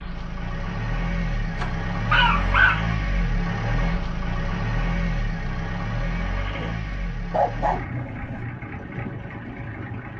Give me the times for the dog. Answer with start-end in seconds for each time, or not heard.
1.6-3.0, 6.5-8.4.